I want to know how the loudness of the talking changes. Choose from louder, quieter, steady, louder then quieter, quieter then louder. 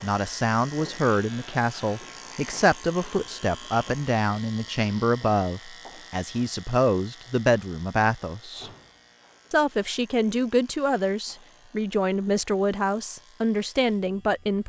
steady.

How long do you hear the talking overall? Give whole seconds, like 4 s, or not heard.
14 s.